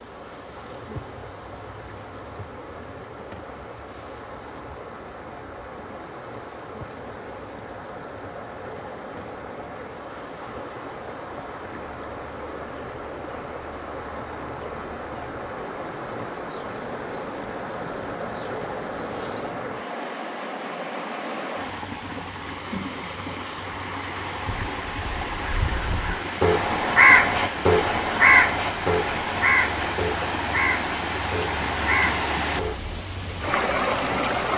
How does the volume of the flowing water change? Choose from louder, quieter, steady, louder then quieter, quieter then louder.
louder.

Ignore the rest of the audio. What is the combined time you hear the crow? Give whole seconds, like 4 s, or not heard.
8 s.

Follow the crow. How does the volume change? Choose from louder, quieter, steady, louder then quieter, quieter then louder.
louder then quieter.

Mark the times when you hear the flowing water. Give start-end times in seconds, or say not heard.
0.0-34.5.